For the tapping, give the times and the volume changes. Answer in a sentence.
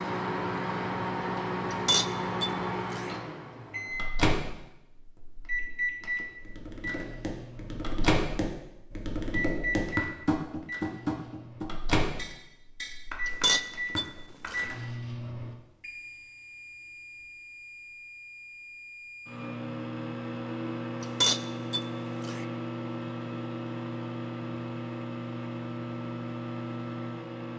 The tapping can be heard from 6.4 to 14.5 s, getting louder then quieter.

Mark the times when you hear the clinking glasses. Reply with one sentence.
You can hear the clinking glasses from 1.7 to 3.1 s, from 13.2 to 14.7 s and from 21.0 to 22.4 s.